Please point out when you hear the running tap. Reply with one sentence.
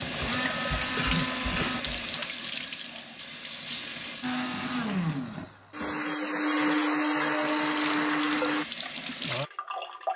You can hear the running tap from 0.0 to 4.3 s and from 7.2 to 10.1 s.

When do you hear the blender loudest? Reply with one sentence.
The loudest moment of the blender is at 7 seconds.